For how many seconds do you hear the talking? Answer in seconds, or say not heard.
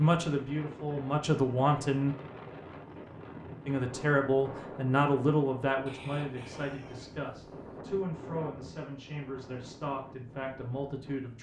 10 s.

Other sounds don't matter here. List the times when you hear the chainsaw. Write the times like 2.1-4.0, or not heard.
not heard.